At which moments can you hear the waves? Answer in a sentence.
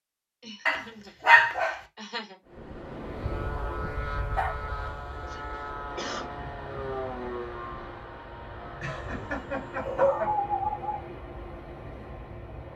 The waves can be heard from 2.5 to 12.7 s.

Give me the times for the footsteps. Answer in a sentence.
You can't hear the footsteps here.